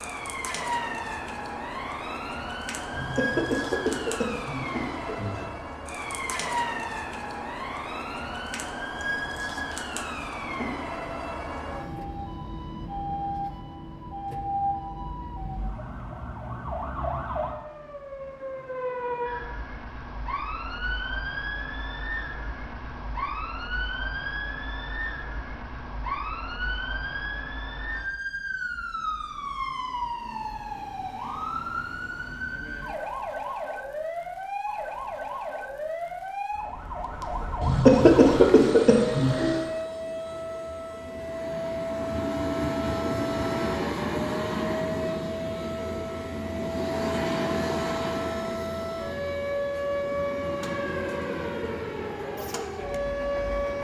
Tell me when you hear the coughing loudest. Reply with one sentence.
The volume of the coughing peaks at 38 seconds.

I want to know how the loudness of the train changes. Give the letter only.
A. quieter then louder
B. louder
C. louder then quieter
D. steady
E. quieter
C.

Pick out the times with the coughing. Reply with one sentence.
You can hear the coughing from 2.9 to 5.5 s and from 37.6 to 39.6 s.